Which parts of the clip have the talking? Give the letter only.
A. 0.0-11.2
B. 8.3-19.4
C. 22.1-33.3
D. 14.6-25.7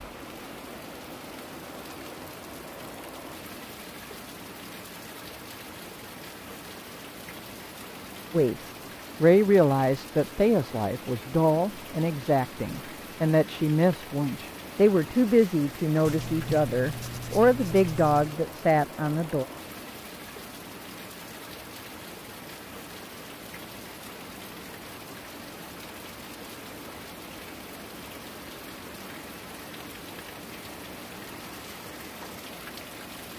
B.